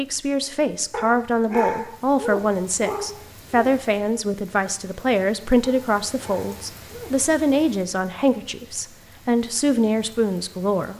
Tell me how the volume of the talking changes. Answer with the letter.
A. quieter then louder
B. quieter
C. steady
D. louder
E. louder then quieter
C.